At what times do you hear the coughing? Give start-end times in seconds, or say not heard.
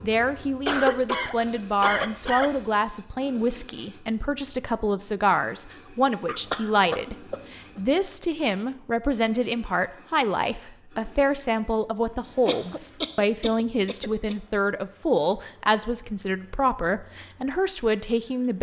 0.7-2.6, 6.2-7.8, 12.4-14.3.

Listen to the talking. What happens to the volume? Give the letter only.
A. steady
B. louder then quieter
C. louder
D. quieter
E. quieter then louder
A.